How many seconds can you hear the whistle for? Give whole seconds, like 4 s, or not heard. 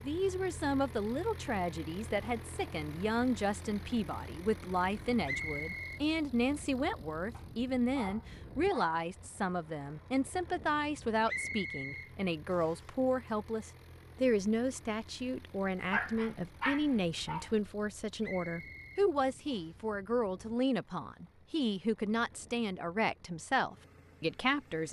4 s.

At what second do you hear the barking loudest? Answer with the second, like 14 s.
16 s.